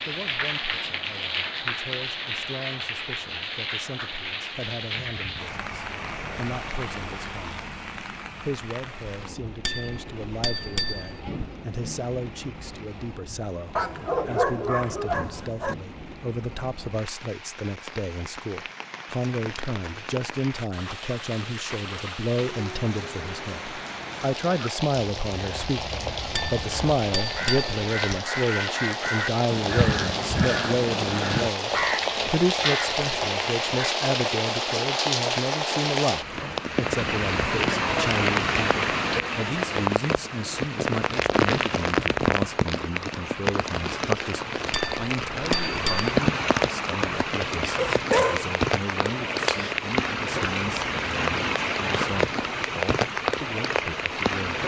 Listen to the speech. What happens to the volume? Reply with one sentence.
The volume of the speech goes up, then down.